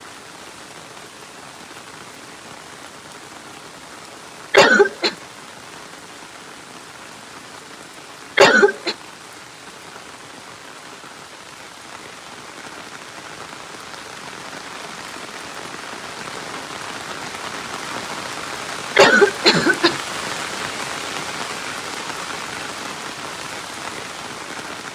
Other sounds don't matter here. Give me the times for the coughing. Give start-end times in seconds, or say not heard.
4.5-5.2, 8.3-8.9, 18.9-19.9.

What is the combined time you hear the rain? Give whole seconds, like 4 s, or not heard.
25 s.